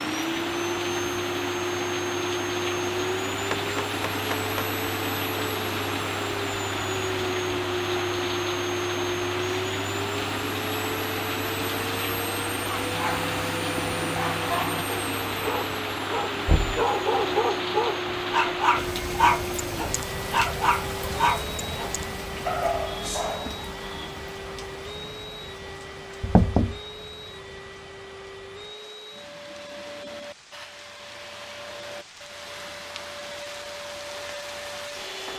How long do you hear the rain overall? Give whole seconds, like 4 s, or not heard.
35 s.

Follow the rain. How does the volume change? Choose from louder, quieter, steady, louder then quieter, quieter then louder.
quieter.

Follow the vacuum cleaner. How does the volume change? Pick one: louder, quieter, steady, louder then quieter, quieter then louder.
quieter.